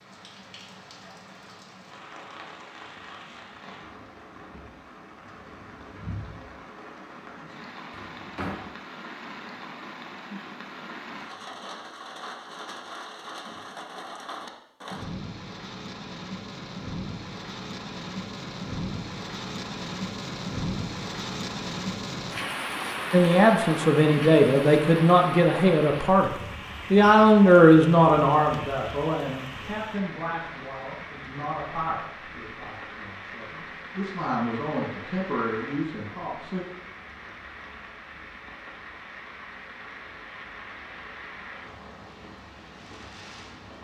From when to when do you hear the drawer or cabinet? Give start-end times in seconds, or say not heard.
7.9-8.7.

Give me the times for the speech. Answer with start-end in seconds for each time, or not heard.
23.1-26.3, 26.9-36.6.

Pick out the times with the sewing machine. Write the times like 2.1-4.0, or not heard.
not heard.